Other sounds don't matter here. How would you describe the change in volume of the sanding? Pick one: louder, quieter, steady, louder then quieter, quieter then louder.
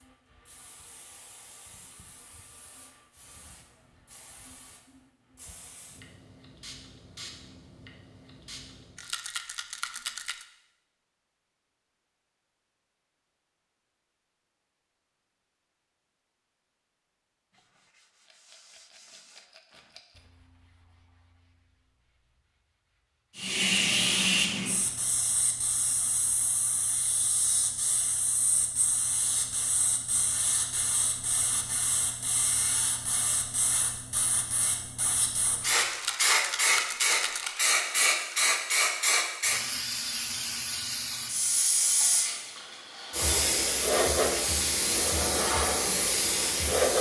quieter.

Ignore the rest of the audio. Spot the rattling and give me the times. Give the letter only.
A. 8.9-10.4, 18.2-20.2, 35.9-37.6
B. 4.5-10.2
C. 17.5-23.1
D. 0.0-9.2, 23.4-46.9
A.